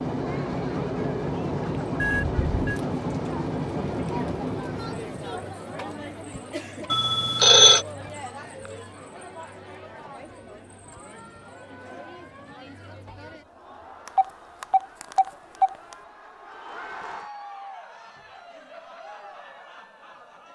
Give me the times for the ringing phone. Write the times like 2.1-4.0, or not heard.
2.0-2.8, 6.9-7.8, 14.1-15.9.